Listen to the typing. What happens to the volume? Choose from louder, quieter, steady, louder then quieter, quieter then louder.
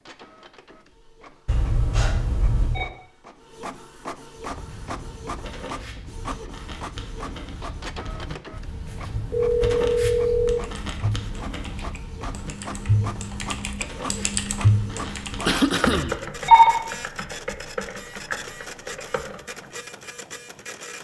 louder then quieter.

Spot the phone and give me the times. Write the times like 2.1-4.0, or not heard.
1.4-2.9, 9.2-10.6, 15.8-16.8.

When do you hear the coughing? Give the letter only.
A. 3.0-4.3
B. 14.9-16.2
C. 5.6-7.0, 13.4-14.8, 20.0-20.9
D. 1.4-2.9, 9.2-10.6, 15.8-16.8
B.